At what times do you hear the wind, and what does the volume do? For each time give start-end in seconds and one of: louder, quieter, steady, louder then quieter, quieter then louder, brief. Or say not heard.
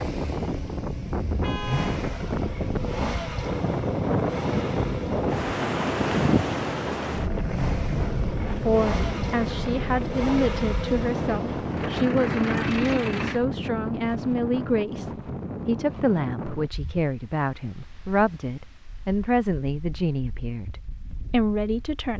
0.0-22.1 quieter.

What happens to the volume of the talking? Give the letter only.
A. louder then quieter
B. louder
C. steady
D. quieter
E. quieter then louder
C.